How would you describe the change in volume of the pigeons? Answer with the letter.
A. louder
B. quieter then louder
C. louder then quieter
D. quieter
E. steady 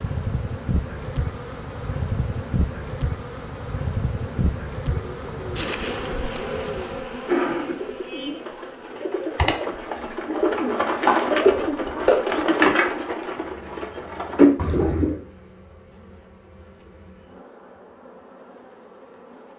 A.